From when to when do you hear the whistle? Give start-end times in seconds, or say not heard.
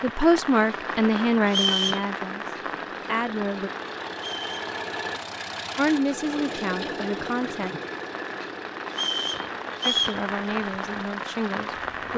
1.4-2.0, 4.2-4.7, 8.9-10.2.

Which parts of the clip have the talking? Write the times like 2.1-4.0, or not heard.
0.0-2.5, 3.0-3.7, 5.8-7.7, 9.8-12.1.